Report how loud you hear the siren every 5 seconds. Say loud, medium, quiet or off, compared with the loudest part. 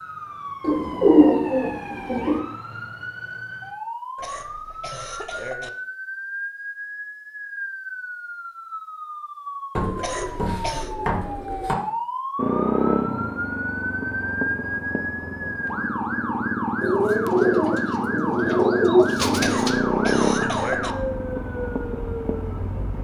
medium, medium, loud, loud, loud.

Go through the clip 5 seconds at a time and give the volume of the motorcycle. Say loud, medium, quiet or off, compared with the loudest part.
off, off, loud, loud, loud.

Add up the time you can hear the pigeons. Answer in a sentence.
The pigeons can be heard for 7 seconds in total.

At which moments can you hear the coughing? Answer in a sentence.
The coughing can be heard from 4.2 to 5.7 s, from 9.9 to 10.9 s and from 19.4 to 20.9 s.